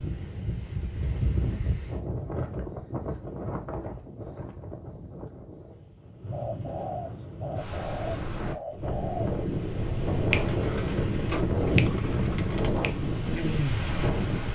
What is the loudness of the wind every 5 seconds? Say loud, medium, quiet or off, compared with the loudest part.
medium, medium, loud.